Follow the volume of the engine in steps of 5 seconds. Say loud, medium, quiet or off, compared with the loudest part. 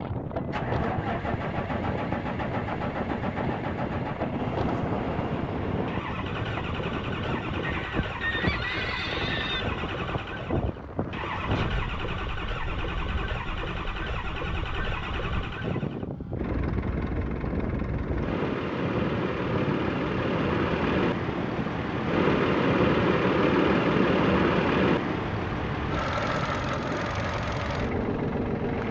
medium, medium, medium, medium, loud, medium.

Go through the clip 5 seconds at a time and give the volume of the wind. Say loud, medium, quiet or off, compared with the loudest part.
loud, loud, medium, loud, loud, loud.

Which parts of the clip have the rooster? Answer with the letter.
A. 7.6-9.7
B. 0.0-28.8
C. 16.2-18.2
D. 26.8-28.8
A.